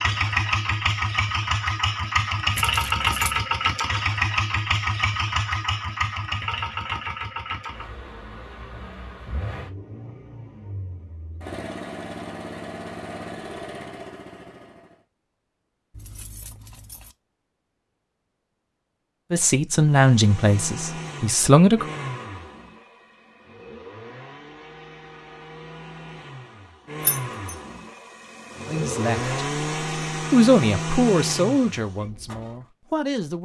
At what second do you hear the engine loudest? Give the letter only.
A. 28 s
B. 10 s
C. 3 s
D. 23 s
C.